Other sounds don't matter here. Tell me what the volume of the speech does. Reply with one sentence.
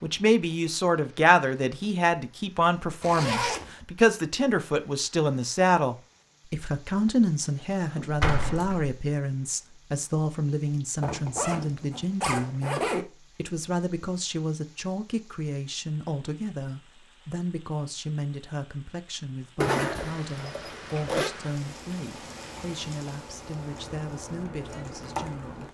The loudness of the speech goes down.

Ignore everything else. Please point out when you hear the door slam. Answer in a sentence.
You can hear the door slam from 8.0 to 8.9 s.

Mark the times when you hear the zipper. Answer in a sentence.
The zipper can be heard from 3.0 to 3.8 s, from 11.0 to 13.1 s and from 19.6 to 21.3 s.